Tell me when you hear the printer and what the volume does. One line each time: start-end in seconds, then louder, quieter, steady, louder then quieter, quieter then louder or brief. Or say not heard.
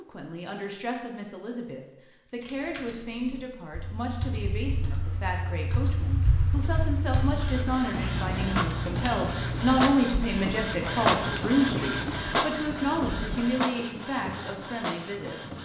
7.2-15.6 louder then quieter.